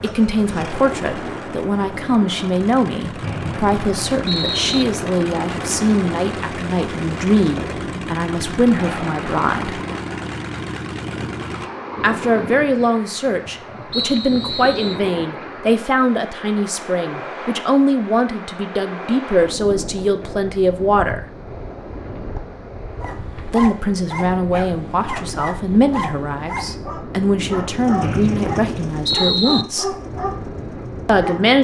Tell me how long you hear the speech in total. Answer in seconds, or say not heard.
26 s.